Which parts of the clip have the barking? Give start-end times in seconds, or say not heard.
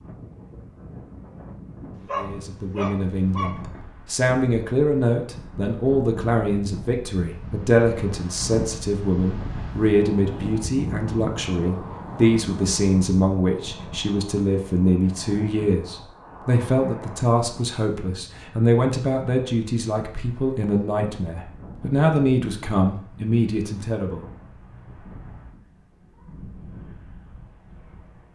1.9-3.6.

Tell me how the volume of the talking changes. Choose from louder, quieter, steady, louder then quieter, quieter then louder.
steady.